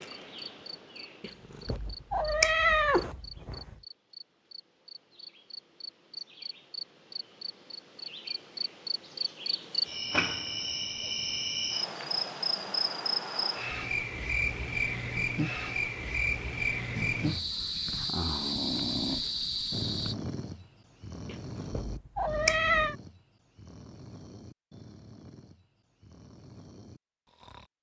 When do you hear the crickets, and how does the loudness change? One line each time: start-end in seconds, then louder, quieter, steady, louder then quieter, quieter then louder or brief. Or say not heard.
0.0-20.1 louder.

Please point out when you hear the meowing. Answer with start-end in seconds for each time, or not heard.
1.2-3.8, 21.2-22.9.